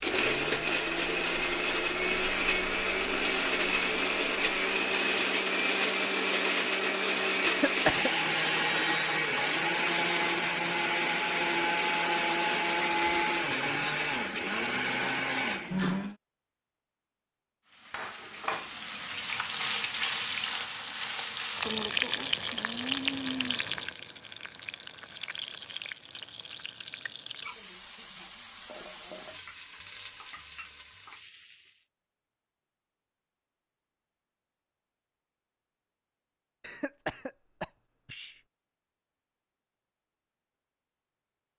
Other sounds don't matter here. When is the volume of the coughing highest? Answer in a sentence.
The volume of the coughing peaks at 8 seconds.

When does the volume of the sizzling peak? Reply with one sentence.
The loudest moment of the sizzling is at 22 seconds.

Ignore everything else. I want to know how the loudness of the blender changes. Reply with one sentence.
The volume of the blender stays about the same.